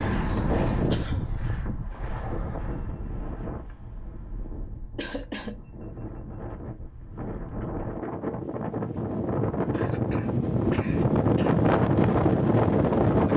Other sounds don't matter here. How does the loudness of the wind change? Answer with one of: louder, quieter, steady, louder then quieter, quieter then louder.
quieter then louder.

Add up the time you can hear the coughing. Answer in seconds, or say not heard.
4 s.